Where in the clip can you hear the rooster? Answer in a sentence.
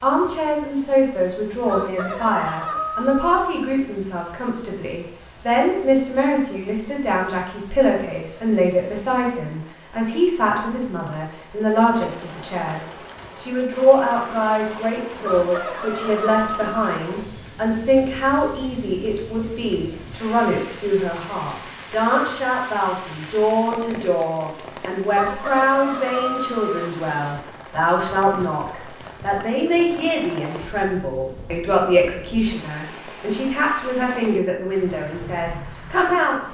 You can hear the rooster from 1.6 to 3.5 s, from 15.2 to 17.0 s and from 25.1 to 26.9 s.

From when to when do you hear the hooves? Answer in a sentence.
You can't hear the hooves here.